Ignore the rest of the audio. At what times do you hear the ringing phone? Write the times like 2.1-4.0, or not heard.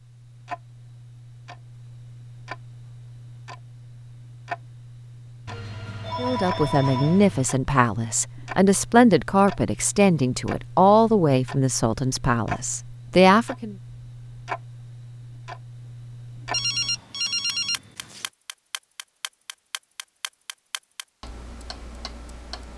5.5-7.5, 16.5-18.2.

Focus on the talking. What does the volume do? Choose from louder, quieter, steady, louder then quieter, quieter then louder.
steady.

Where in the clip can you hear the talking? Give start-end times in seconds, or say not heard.
6.2-13.8.